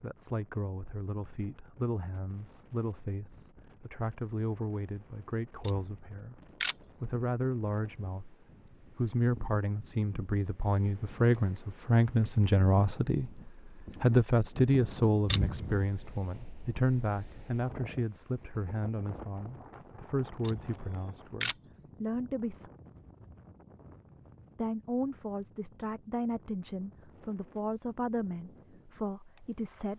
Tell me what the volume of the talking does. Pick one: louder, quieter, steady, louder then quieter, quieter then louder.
louder then quieter.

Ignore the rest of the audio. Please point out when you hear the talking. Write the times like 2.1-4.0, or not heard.
0.0-8.3, 8.9-22.7, 24.6-29.9.